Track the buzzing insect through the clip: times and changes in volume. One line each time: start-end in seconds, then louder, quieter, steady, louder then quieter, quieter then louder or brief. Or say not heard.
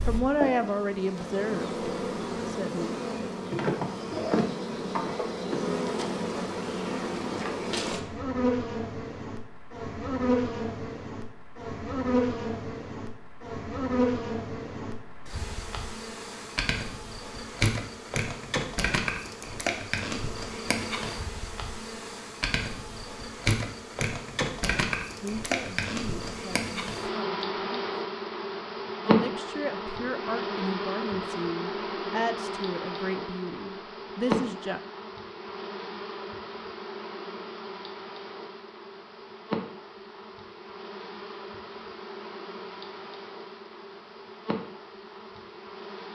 0.0-46.1 quieter.